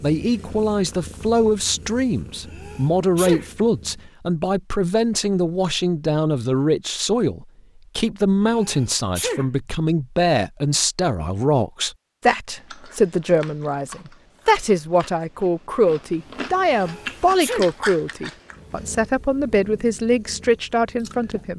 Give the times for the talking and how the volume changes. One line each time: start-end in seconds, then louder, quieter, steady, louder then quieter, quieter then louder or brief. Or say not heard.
0.0-21.5 steady.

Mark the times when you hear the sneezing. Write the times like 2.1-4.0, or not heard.
2.5-3.5, 8.4-9.4, 16.7-17.7.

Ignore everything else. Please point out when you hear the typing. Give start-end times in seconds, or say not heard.
not heard.